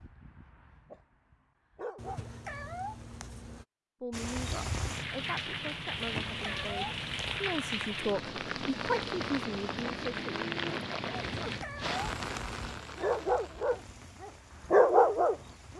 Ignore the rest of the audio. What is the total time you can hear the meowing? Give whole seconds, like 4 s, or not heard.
5 s.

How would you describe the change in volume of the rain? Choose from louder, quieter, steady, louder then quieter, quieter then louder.
quieter.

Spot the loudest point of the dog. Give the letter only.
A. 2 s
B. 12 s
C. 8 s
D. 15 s
D.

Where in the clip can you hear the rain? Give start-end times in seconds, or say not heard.
4.1-15.7.